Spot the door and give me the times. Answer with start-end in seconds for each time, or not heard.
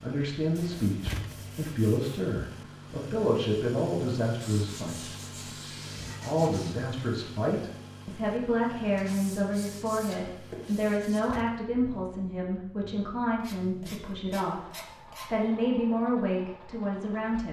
1.0-1.6, 11.2-11.7.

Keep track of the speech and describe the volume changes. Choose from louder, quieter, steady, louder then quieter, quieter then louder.
steady.